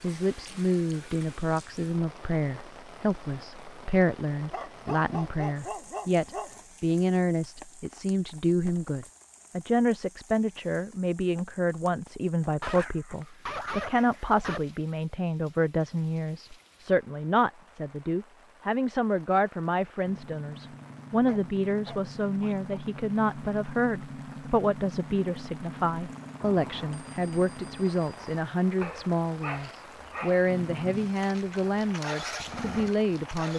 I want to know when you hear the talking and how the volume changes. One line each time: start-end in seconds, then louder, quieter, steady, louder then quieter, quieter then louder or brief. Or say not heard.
0.0-33.5 steady.